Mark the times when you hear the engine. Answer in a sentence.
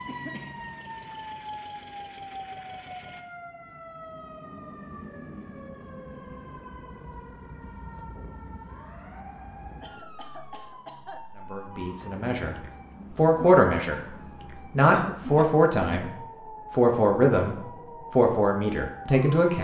The engine can be heard from 0.2 to 3.2 s.